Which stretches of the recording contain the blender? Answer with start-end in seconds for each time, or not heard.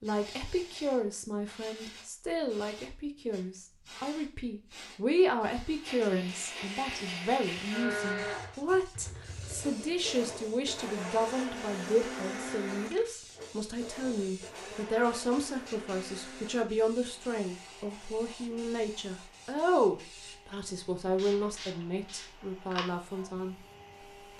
5.8-24.3.